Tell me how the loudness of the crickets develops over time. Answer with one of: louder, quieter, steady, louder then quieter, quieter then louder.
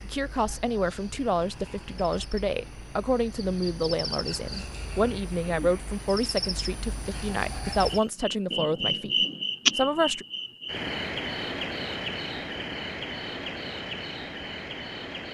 louder then quieter.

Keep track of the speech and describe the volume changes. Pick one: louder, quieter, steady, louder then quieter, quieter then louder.
steady.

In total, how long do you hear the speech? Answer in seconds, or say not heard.
10 s.